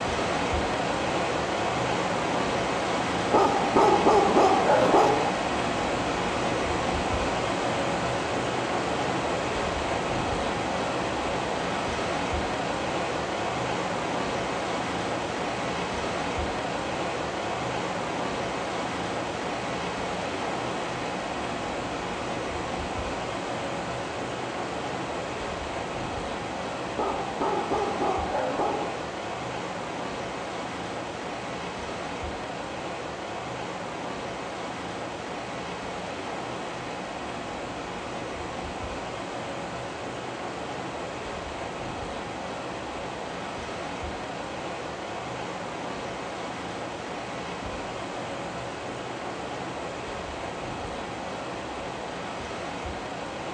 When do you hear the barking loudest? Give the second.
4 s.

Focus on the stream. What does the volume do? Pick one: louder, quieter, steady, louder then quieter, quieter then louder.
quieter.